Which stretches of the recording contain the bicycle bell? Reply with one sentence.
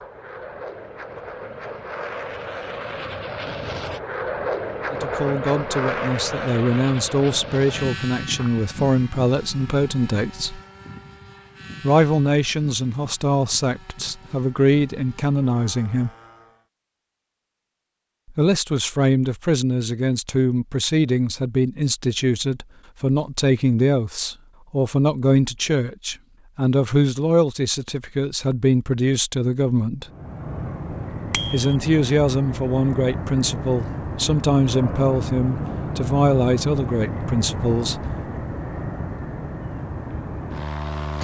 The bicycle bell can be heard from 31.3 to 31.8 s.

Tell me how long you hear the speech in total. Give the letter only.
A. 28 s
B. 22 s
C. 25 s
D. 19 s
A.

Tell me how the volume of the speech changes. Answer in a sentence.
The volume of the speech stays about the same.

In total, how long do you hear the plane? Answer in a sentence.
The plane can be heard for 28 seconds in total.